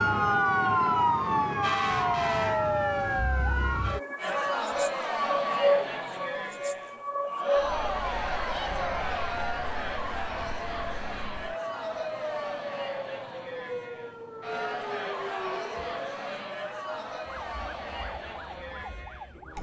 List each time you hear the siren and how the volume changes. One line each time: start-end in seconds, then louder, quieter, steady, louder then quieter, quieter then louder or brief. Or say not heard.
0.0-19.5 quieter.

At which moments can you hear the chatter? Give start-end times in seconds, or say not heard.
4.2-19.5.